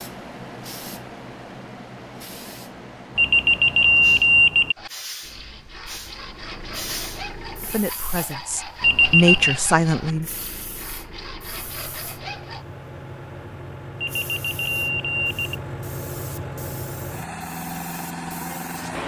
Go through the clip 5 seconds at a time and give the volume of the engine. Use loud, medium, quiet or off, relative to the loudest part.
off, medium, medium, loud.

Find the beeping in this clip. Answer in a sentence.
You can hear the beeping from 3.1 to 4.8 s, from 8.8 to 9.6 s and from 14.0 to 15.6 s.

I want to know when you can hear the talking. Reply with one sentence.
The talking can be heard from 7.6 to 10.2 s.